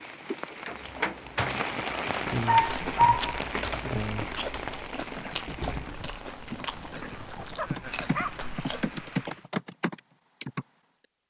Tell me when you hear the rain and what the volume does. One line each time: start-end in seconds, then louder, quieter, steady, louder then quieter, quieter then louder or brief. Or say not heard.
0.0-9.5 quieter.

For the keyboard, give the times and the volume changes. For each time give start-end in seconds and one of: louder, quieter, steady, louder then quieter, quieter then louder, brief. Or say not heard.
0.7-10.7 quieter then louder.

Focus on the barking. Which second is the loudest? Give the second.
3 s.